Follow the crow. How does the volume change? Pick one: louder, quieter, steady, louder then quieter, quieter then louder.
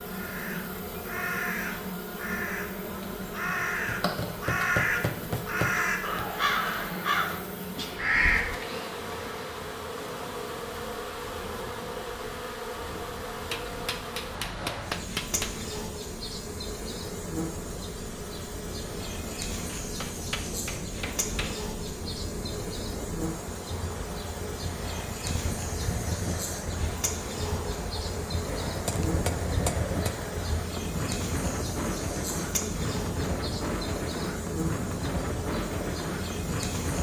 louder.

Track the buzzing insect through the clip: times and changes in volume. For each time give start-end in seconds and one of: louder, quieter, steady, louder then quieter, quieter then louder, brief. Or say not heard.
0.0-36.9 steady.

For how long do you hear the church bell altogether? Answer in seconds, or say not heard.
not heard.